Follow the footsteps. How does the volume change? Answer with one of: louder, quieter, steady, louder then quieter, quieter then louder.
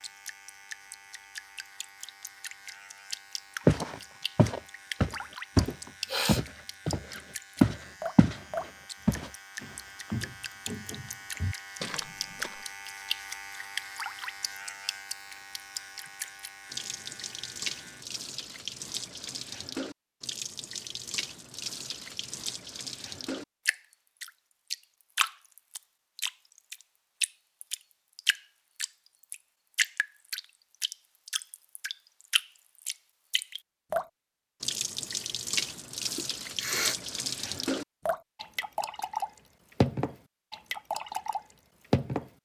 quieter.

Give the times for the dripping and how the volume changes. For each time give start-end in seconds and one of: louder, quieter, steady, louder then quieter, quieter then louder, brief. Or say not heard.
0.0-42.3 louder.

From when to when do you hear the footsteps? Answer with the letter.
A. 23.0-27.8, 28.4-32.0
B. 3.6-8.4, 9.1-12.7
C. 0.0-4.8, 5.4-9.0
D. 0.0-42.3
B.